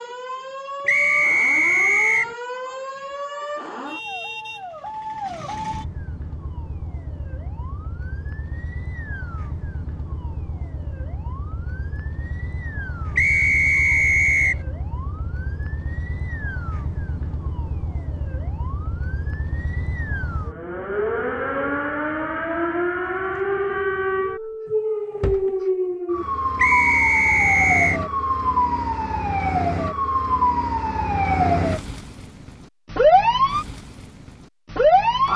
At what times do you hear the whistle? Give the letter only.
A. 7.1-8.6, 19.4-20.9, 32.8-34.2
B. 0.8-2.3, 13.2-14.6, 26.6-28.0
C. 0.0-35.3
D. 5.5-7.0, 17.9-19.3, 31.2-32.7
B.